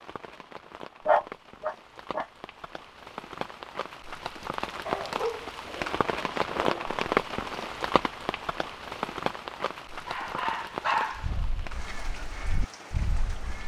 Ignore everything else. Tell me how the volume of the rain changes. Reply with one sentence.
The loudness of the rain goes up, then down.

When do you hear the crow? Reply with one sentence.
You can hear the crow from 11.1 to 13.6 s.